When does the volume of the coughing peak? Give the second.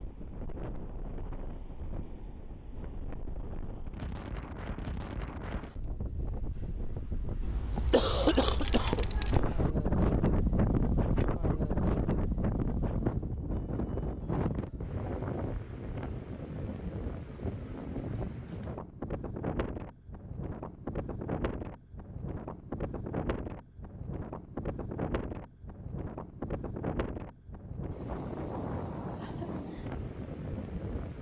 8 s.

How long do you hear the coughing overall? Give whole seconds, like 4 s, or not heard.
2 s.